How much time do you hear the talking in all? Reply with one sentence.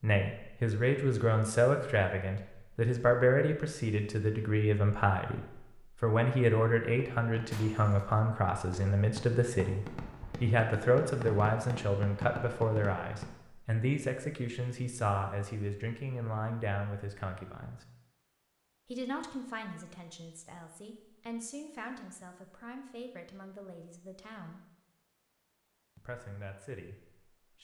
The talking can be heard for 25 seconds in total.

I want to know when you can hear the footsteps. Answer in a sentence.
The footsteps can't be heard in this clip.